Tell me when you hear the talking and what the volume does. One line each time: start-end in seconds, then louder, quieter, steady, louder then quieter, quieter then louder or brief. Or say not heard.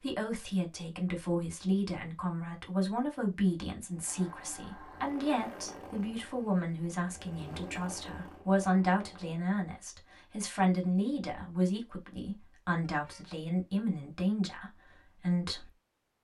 0.0-15.7 steady.